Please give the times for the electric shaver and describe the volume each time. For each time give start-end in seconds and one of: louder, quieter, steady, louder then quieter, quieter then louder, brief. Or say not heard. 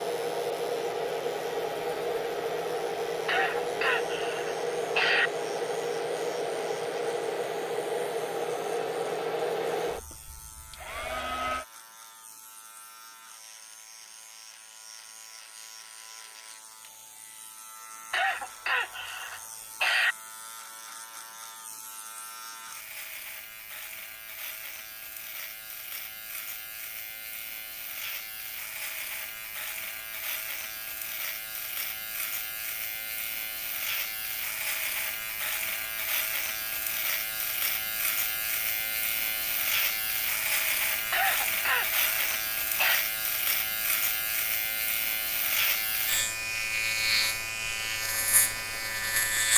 0.0-49.5 louder.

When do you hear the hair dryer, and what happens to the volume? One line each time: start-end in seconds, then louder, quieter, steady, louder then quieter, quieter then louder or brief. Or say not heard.
0.0-11.7 steady.